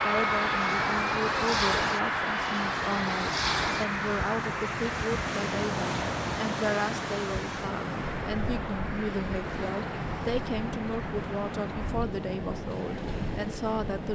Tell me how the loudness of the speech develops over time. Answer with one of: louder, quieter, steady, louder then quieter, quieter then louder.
steady.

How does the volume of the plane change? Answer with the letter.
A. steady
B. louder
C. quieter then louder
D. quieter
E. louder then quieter
D.